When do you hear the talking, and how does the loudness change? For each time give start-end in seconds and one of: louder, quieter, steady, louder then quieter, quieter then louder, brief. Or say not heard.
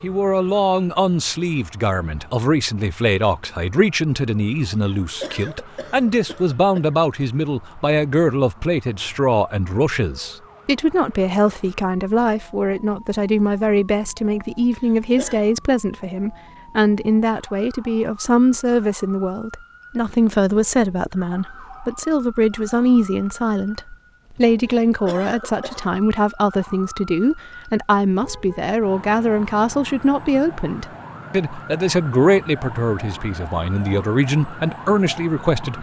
0.0-35.7 steady.